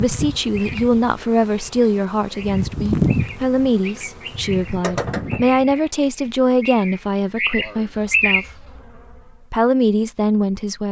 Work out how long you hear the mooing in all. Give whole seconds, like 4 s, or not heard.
not heard.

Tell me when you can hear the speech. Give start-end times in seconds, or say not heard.
0.0-8.7, 9.5-10.8.